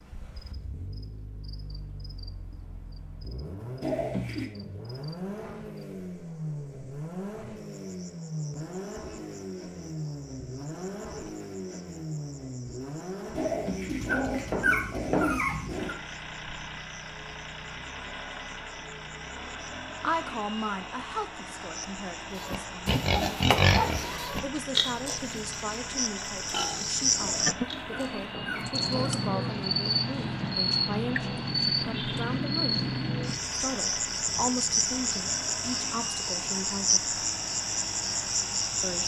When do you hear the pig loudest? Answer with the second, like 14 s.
24 s.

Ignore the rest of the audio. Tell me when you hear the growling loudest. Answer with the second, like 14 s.
15 s.